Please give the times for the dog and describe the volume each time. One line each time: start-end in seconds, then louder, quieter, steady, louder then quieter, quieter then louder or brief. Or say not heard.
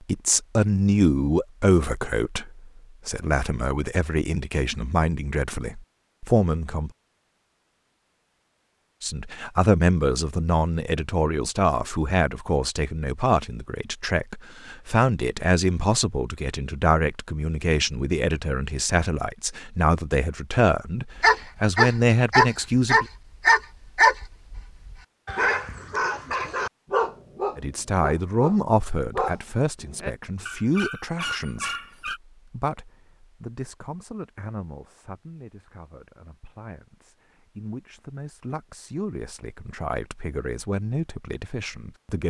21.1-32.2 quieter.